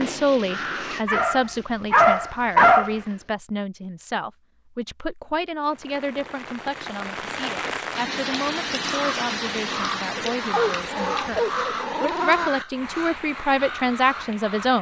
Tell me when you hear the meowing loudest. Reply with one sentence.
The volume of the meowing peaks at 12 seconds.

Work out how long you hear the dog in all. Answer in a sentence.
The dog can be heard for 4 seconds in total.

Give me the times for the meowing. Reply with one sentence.
The meowing can be heard from 10.8 to 12.5 s.